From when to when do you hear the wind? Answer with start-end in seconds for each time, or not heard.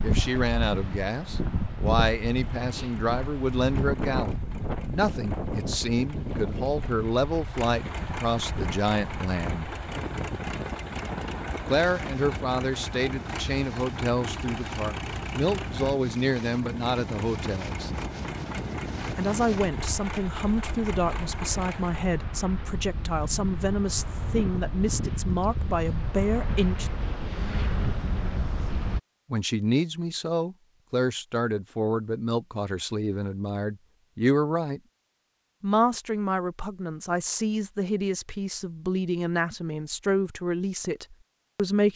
0.0-29.0.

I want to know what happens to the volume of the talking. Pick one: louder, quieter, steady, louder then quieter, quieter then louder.
steady.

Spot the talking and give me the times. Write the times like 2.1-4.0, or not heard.
0.0-9.7, 11.7-17.9, 19.1-26.9, 29.3-34.8, 35.6-41.9.